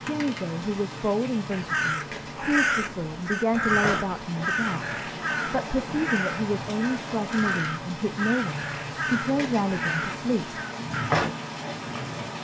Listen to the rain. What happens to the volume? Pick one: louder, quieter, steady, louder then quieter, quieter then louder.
louder.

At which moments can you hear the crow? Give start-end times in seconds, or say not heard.
1.5-11.2.